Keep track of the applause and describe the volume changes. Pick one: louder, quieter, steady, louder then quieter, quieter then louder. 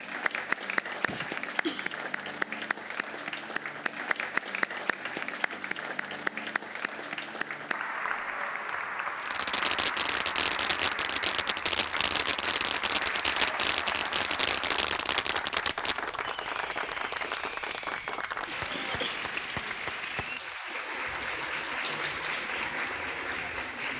steady.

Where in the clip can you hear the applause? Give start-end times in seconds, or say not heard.
0.0-23.9.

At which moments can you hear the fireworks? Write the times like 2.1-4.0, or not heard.
9.2-18.5.